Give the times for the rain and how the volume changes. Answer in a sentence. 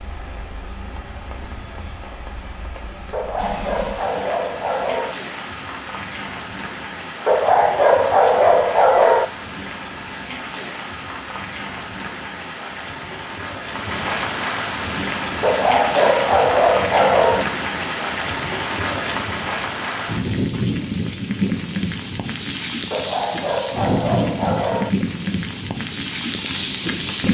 You can hear the rain from 0.0 to 27.2 s, getting louder.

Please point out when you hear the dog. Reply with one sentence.
The dog can be heard from 3.1 to 5.2 s, from 7.2 to 9.2 s, from 15.4 to 17.4 s and from 22.9 to 24.9 s.